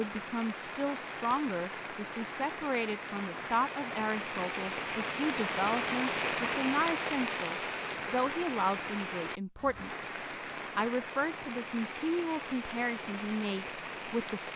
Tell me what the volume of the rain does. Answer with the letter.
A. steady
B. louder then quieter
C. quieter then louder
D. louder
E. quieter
B.